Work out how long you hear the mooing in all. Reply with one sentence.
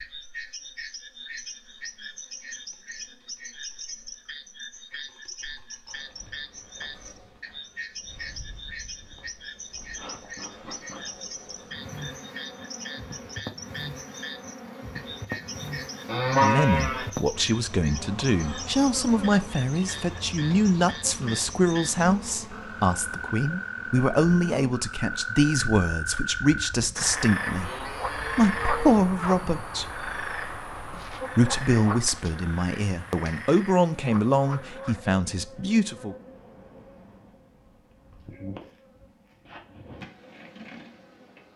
The mooing can be heard for 2 seconds in total.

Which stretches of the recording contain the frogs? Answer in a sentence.
You can hear the frogs from 0.0 to 35.0 s.